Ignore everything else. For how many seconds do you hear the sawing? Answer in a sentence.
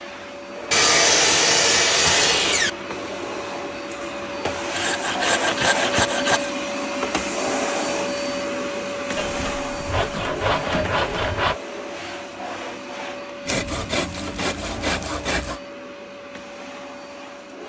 The sawing can be heard for 8 seconds in total.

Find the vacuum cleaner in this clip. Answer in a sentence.
The vacuum cleaner can be heard from 0.0 to 17.6 s.